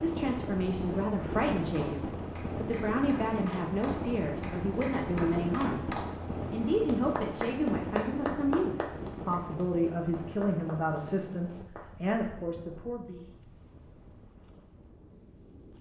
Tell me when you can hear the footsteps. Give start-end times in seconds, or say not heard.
not heard.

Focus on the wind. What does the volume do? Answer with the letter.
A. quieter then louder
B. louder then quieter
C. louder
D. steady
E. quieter
E.